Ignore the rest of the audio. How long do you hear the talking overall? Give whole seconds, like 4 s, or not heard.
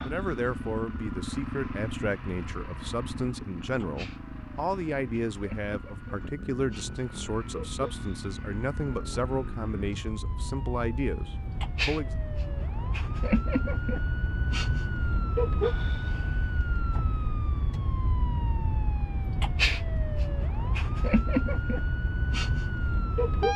12 s.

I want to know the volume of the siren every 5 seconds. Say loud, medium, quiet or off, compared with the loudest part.
quiet, quiet, loud, loud, loud.